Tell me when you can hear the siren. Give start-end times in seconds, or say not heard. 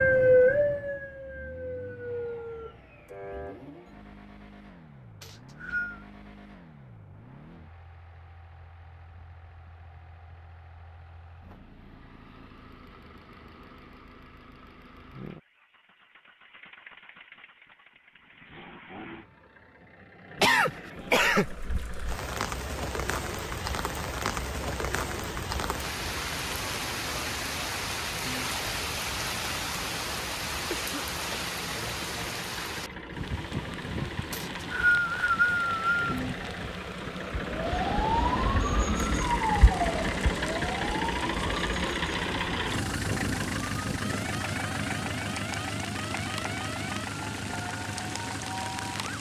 0.0-3.6, 37.3-49.1.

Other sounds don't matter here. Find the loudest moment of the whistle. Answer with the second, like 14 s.
35 s.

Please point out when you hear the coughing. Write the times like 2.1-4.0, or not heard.
20.4-21.5, 30.7-31.6.